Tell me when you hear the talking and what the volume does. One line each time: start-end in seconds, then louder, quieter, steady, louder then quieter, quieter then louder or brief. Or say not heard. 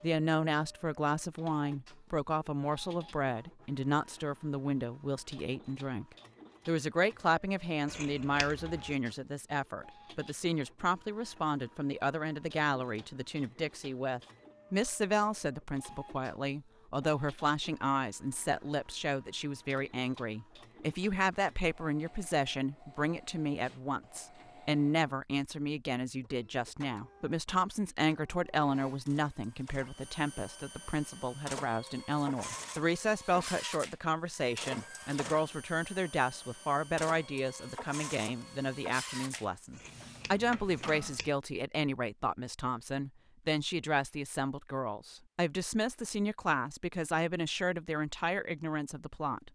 0.0-6.0 steady
6.7-49.5 steady.